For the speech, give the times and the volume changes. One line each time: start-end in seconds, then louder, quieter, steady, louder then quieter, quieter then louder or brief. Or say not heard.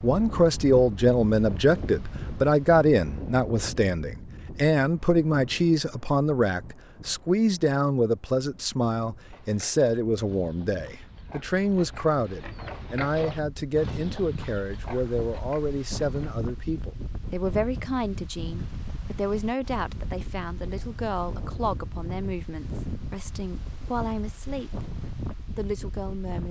0.0-26.4 quieter.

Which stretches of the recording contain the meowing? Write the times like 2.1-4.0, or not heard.
not heard.